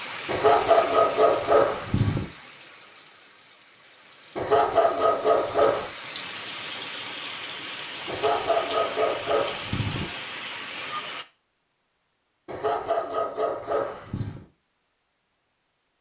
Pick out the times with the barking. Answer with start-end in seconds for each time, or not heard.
0.2-2.2, 4.3-5.9, 8.1-10.1, 12.4-14.4.